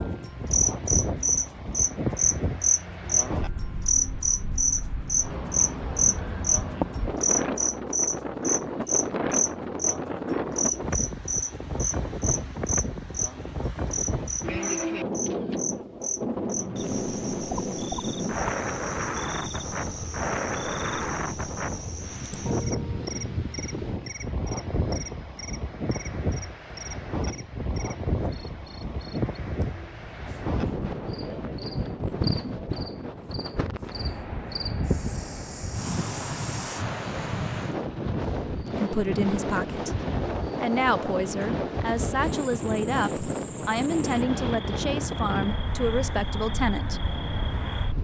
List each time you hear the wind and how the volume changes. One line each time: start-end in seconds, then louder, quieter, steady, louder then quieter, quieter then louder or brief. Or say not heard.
0.0-48.0 steady.